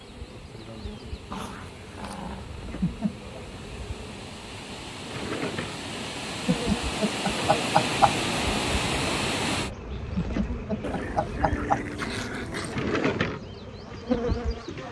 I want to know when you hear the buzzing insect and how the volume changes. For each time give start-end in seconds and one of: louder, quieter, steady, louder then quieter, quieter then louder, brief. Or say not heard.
0.0-14.8 louder.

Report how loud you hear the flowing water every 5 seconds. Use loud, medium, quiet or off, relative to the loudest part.
quiet, loud, off.